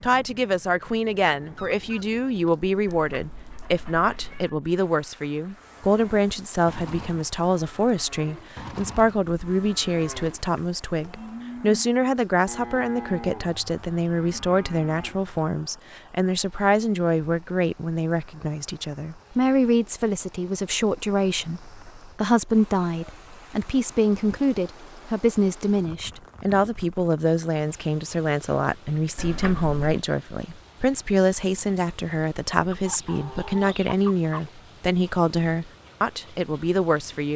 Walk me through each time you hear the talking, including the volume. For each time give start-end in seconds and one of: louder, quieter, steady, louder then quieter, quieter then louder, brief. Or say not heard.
0.0-37.3 steady.